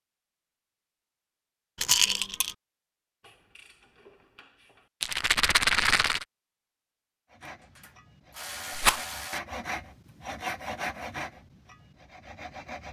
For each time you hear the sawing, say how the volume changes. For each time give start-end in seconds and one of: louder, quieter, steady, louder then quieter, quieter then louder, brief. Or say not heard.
7.3-12.8 louder then quieter.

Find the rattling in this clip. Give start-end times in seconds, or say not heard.
1.8-2.5, 5.0-6.2, 8.7-9.1.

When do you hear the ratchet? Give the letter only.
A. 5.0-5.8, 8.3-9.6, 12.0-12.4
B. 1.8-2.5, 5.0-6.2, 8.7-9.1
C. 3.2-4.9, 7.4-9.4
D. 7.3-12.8
C.